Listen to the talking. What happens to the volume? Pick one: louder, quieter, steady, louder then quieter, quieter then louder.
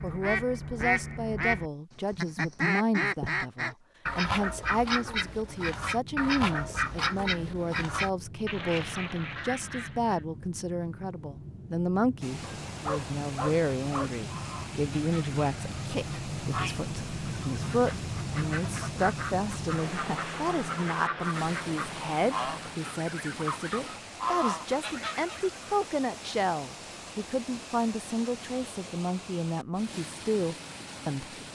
steady.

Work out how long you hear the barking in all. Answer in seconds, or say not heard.
2 s.